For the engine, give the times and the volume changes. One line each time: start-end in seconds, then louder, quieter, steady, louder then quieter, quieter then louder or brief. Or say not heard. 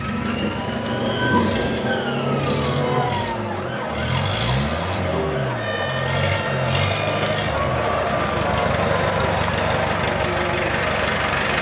0.0-11.5 louder.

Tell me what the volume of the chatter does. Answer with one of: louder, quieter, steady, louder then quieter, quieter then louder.
louder.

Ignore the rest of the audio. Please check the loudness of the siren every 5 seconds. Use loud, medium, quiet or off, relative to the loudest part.
loud, medium, medium.